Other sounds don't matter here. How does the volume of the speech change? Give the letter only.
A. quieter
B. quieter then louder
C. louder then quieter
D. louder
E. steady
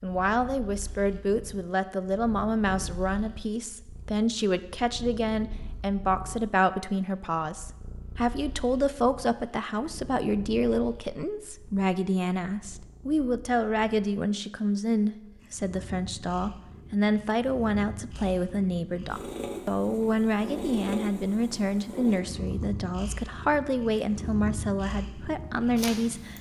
E.